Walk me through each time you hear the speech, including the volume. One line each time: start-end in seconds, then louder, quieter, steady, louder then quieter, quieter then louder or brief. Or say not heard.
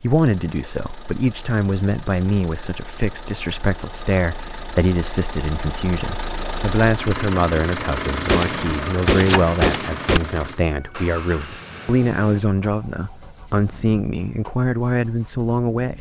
0.0-15.9 steady.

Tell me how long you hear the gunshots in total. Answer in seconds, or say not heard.
2 s.